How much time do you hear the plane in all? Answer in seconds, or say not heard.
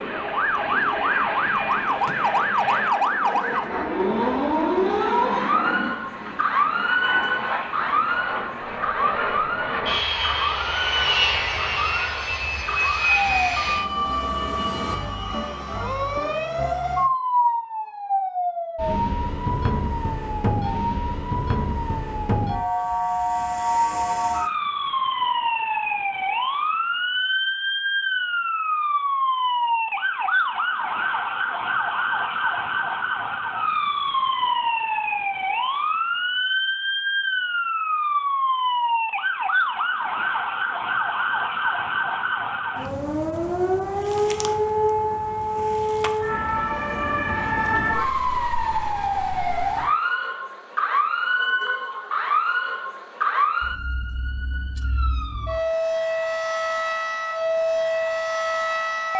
15 s.